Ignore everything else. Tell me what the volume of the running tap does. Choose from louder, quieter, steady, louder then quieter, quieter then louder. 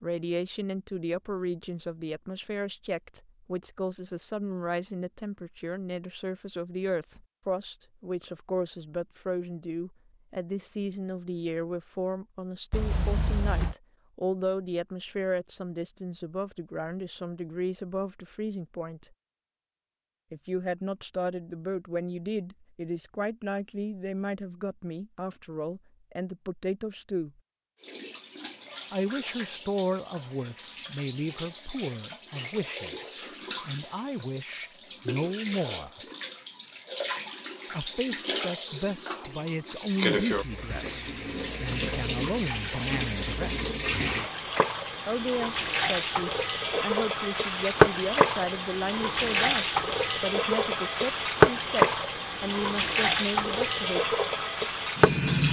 louder.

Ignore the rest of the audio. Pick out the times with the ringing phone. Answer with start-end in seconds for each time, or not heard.
12.7-13.8.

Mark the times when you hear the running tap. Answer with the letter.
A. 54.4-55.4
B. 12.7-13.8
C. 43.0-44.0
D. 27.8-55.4
D.